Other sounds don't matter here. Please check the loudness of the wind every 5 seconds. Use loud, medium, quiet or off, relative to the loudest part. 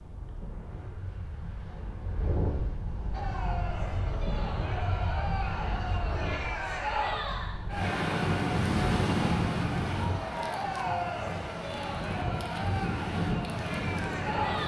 medium, loud, loud.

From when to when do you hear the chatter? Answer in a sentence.
The chatter can be heard from 3.1 to 14.6 s.